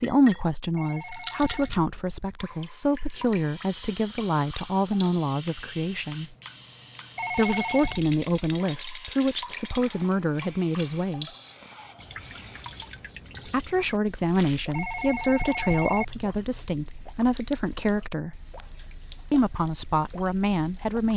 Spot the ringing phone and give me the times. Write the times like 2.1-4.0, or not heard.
0.8-1.7, 7.2-8.0, 14.7-16.6.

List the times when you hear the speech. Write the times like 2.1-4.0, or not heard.
0.0-6.3, 7.3-11.2, 13.4-18.4, 19.3-21.1.